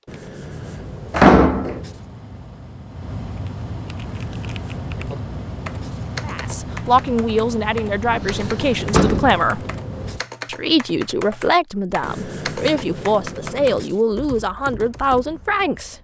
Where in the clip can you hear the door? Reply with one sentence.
The door can be heard from 1.1 to 1.8 s and from 8.1 to 9.4 s.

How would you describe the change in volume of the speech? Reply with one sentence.
The volume of the speech stays about the same.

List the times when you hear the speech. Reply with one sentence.
The speech can be heard from 6.2 to 9.7 s and from 10.4 to 15.9 s.